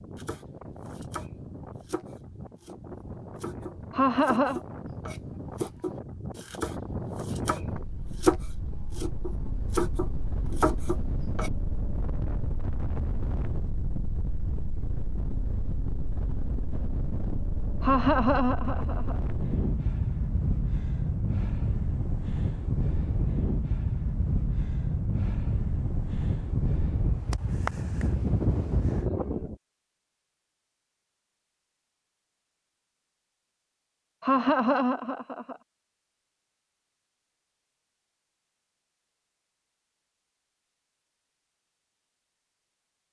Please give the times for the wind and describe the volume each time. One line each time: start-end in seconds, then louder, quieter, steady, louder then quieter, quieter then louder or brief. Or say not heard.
0.0-29.6 louder.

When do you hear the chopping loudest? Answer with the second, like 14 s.
8 s.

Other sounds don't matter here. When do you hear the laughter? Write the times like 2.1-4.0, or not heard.
3.9-4.6, 17.8-19.1, 34.2-35.5.